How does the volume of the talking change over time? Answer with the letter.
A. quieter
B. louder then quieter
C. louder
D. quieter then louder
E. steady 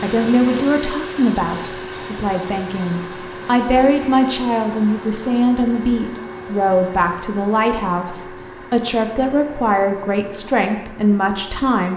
E.